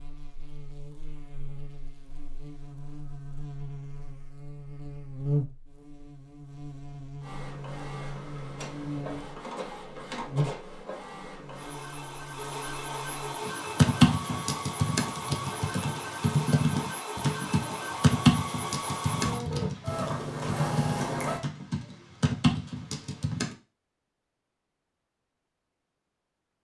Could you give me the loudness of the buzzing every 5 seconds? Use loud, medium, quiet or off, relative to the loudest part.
medium, loud, loud, off, off, off.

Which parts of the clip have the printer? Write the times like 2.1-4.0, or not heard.
7.2-21.4.